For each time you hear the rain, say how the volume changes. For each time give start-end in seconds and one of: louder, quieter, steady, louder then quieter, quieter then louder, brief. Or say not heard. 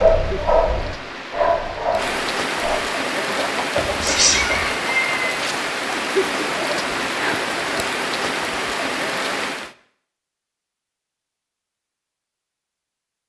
0.0-9.8 louder.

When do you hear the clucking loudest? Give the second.
5 s.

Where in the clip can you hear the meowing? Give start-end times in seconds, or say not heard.
3.8-4.7.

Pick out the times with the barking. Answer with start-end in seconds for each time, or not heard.
0.0-2.8.